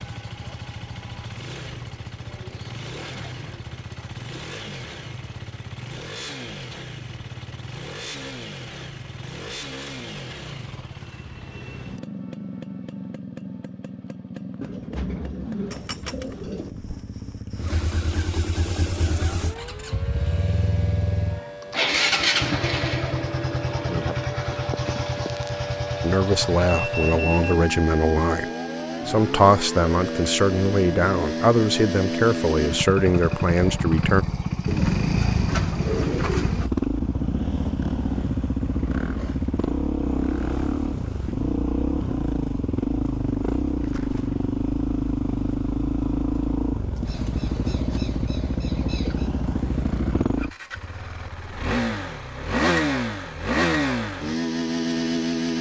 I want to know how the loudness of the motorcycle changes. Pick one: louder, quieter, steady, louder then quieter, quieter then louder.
louder.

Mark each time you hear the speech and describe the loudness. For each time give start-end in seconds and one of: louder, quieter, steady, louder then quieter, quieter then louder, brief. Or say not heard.
26.0-28.4 brief
29.1-34.2 steady.